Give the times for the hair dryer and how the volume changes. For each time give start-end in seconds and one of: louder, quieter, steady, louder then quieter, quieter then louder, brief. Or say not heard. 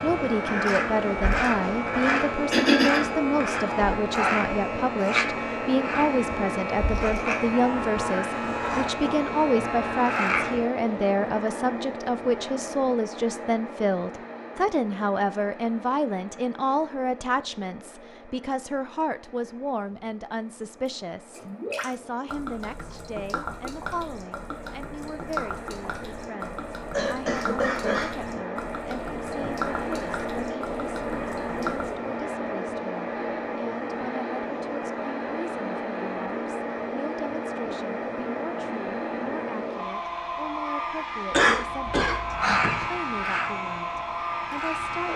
0.0-45.1 quieter then louder.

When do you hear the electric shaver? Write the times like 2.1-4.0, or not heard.
0.0-10.7, 42.1-45.1.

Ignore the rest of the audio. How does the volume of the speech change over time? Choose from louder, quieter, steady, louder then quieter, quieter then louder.
quieter.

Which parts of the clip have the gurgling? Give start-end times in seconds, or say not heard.
21.4-31.9.